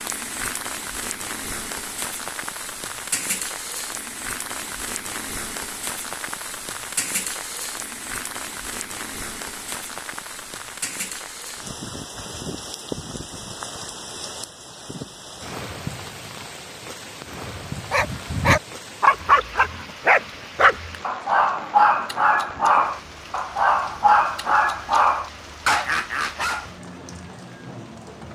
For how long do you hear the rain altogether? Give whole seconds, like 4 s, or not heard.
28 s.